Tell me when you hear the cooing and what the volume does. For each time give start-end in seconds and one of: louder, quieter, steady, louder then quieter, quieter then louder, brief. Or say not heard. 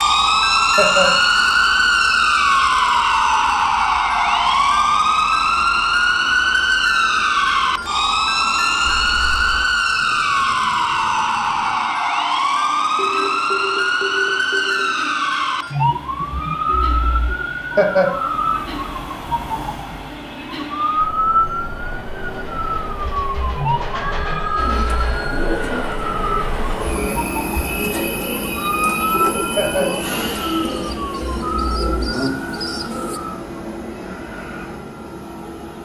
24.6-33.2 steady.